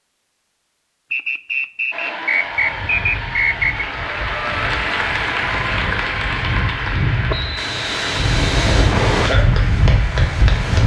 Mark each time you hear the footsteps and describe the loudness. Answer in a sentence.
The footsteps can't be heard in this clip.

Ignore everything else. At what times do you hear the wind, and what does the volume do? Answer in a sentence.
You can hear the wind from 2.5 to 10.8 s, getting louder.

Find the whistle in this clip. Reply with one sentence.
The whistle can be heard from 1.1 to 3.9 s and from 7.3 to 9.3 s.